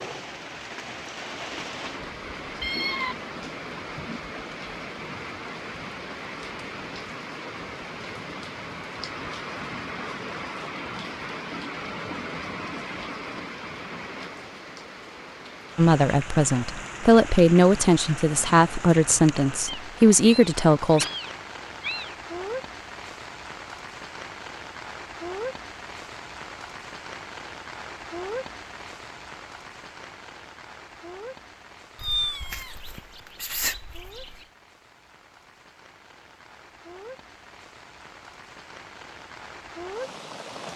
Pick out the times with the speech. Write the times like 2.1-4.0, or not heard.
15.8-21.1.